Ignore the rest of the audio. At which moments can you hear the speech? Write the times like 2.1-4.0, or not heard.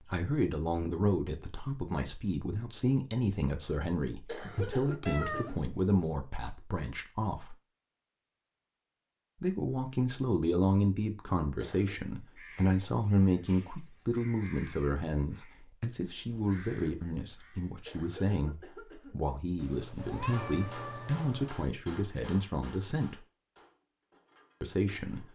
0.0-7.5, 9.4-23.2, 24.6-25.3.